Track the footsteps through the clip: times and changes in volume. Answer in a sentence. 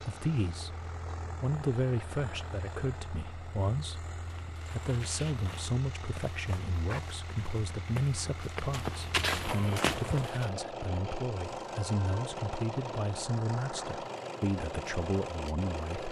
You can hear the footsteps from 4.2 to 10.5 s, getting louder.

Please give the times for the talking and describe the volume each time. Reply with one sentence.
The talking can be heard briefly from 0.0 to 0.8 s; and from 1.4 to 16.0 s, at a steady volume.